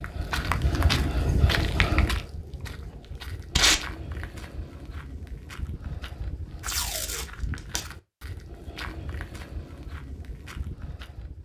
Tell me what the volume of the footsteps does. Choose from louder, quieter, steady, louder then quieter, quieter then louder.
quieter.